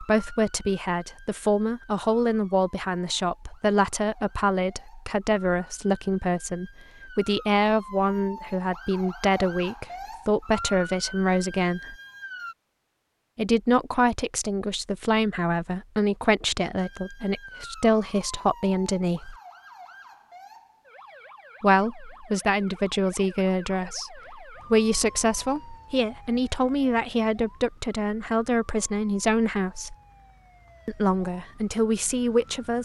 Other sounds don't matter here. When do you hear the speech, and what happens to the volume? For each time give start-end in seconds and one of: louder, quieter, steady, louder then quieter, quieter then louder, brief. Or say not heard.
0.0-11.9 steady
13.3-19.4 steady
21.6-29.9 steady
30.9-32.8 brief.